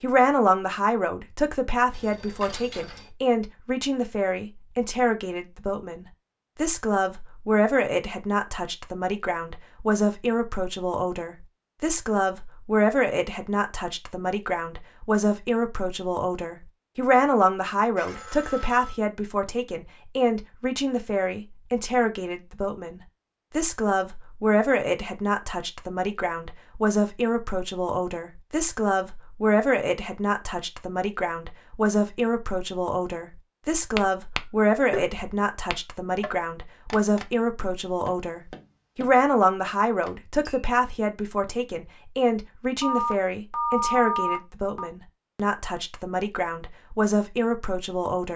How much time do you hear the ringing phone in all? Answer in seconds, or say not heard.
4 s.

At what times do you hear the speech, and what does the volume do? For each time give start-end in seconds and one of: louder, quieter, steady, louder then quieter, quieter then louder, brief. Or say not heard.
0.0-48.3 steady.